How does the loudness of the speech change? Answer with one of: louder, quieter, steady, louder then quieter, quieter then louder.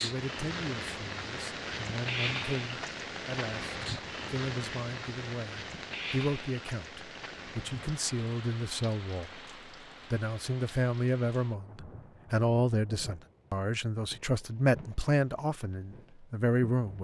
louder.